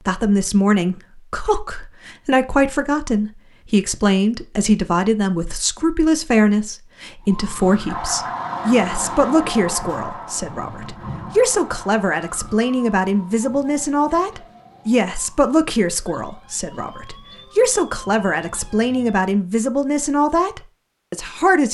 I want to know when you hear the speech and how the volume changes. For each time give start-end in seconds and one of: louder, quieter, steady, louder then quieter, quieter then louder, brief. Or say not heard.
0.1-21.6 steady.